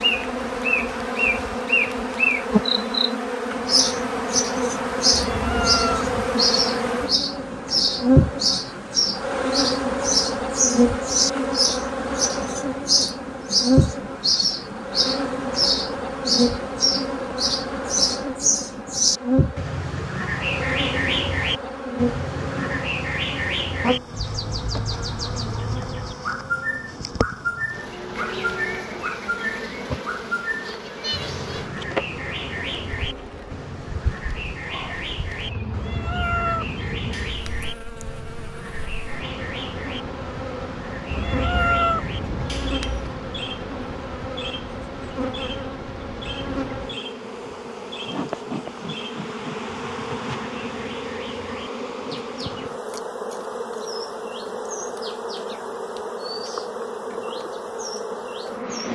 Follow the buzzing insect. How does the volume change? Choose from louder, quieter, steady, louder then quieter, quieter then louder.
quieter.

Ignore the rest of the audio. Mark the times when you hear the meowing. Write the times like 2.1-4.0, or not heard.
5.1-6.3, 35.7-37.7, 41.1-43.1.